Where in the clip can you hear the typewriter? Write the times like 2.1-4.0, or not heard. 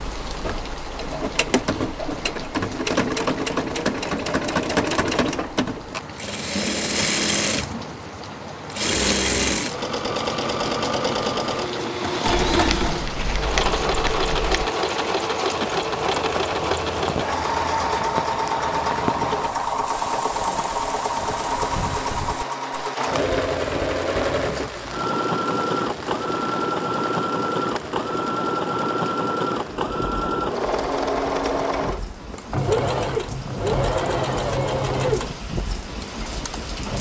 not heard.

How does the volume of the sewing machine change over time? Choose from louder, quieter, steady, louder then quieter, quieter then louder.
steady.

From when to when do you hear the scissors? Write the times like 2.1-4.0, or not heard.
12.3-14.7.